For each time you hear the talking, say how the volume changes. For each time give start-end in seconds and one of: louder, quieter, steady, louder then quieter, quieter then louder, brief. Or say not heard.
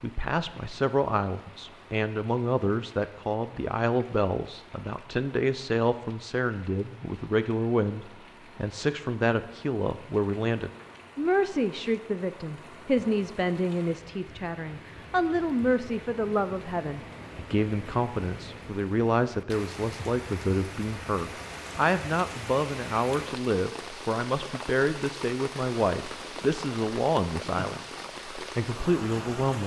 0.0-29.6 steady.